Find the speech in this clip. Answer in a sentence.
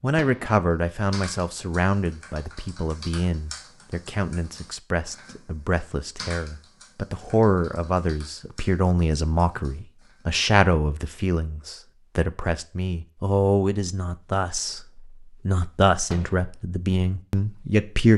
The speech can be heard from 0.0 to 18.1 s.